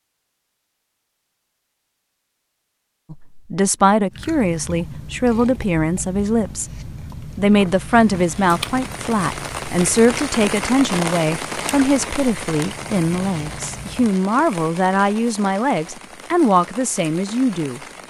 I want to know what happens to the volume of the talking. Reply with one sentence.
The loudness of the talking stays about the same.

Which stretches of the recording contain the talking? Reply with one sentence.
The talking can be heard from 3.1 to 17.8 s.